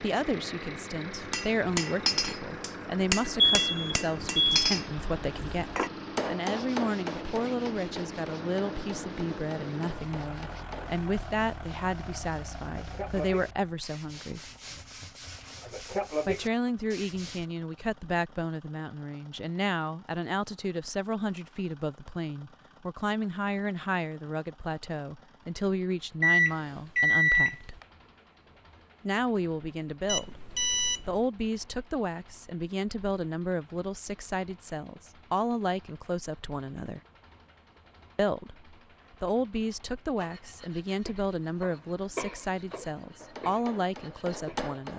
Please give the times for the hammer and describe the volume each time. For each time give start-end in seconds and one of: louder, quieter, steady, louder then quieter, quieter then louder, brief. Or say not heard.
1.2-10.9 quieter
43.2-44.9 brief.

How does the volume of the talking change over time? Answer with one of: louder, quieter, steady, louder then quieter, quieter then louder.
steady.